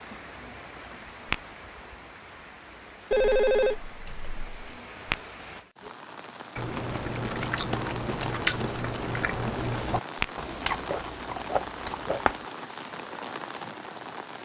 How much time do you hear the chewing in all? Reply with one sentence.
You can hear the chewing for 6 seconds altogether.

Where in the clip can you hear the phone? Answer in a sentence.
The phone can be heard from 3.1 to 4.5 s.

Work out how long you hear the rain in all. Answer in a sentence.
The rain can be heard for 14 seconds in total.